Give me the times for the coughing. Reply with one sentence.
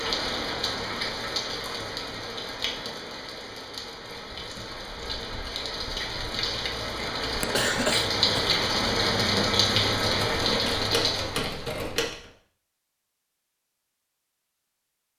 The coughing can be heard from 7.3 to 8.6 s.